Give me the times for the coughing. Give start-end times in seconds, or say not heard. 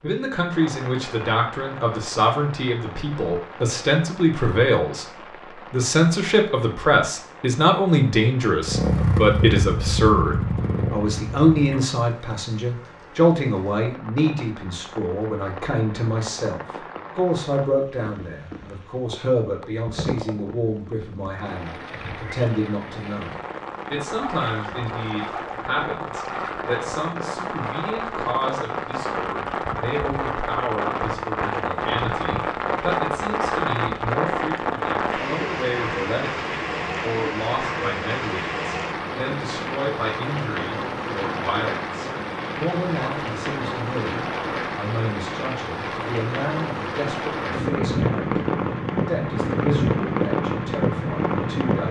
not heard.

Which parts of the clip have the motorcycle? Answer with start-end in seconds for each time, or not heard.
8.6-11.8.